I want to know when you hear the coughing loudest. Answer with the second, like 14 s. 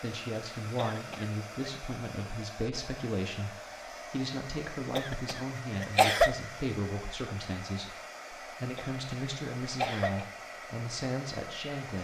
6 s.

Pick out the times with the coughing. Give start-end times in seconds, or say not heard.
0.8-1.7, 5.0-6.3, 8.8-10.2.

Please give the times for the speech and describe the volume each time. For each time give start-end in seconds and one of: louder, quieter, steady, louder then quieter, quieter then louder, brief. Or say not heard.
0.0-11.9 steady.